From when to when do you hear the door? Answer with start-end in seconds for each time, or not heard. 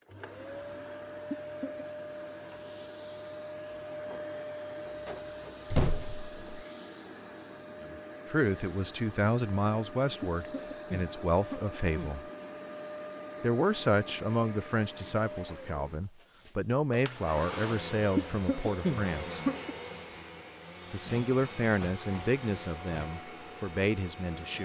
4.8-6.7.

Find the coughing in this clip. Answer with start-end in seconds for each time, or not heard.
1.3-1.9, 10.2-12.2, 18.1-19.8.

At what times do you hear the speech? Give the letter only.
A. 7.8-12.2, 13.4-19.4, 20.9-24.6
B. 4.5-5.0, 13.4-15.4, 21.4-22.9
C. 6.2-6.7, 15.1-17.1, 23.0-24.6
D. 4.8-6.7
A.